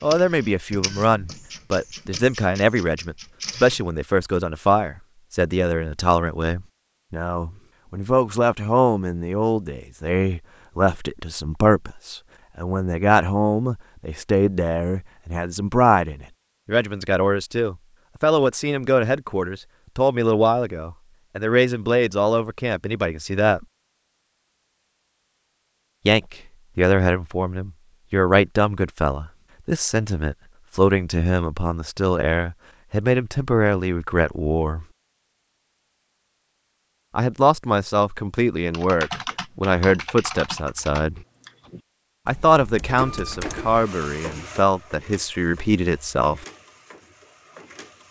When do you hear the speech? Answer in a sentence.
You can hear the speech from 0.0 to 23.6 s, from 26.1 to 34.9 s, from 37.1 to 41.2 s and from 42.2 to 46.5 s.